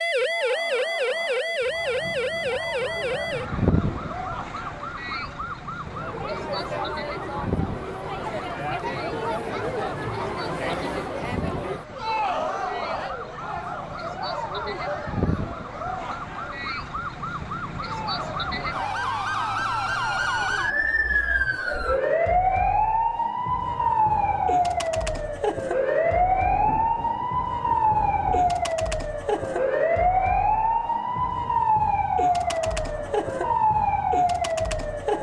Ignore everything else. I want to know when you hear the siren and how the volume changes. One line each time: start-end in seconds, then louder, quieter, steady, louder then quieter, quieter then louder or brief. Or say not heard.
0.0-35.1 quieter then louder.